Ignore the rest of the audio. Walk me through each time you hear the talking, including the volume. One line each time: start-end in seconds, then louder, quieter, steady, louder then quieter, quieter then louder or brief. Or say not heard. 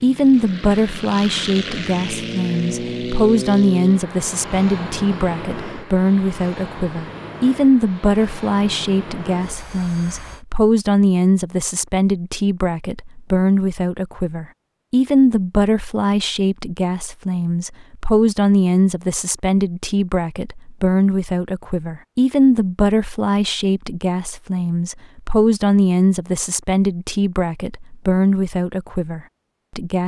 0.0-30.0 steady.